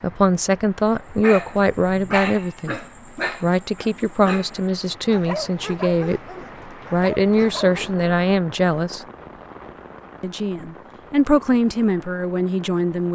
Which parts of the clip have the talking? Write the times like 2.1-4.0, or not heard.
0.0-2.8, 3.4-6.2, 6.9-9.1, 10.2-13.1.